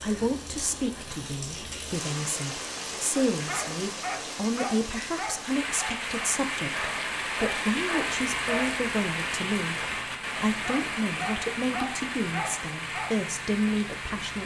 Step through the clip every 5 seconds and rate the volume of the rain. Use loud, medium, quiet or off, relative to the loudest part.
medium, loud, loud.